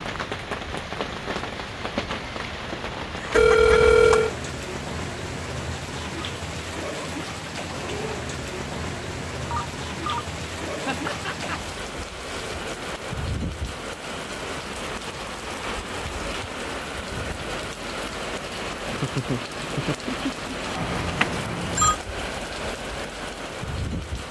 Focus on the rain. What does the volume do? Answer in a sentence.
The loudness of the rain stays about the same.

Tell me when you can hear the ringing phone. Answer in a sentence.
You can hear the ringing phone from 3.3 to 4.3 s, from 9.5 to 10.2 s and from 20.8 to 21.9 s.